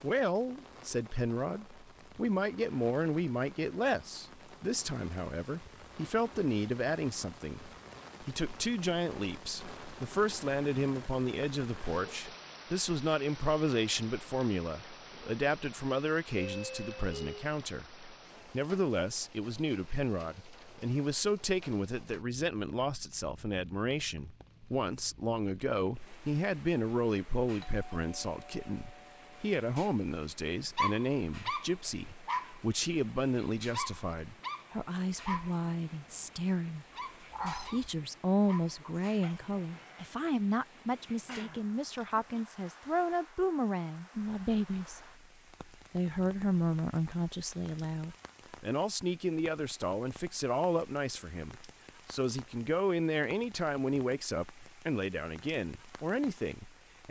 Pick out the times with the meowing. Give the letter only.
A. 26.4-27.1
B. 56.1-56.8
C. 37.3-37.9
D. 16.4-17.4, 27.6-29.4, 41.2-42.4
C.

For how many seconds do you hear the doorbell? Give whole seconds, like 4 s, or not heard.
4 s.